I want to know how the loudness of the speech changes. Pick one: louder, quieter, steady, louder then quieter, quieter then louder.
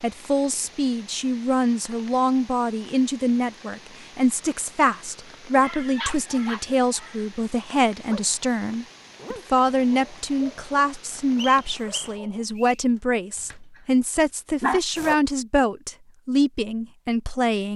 steady.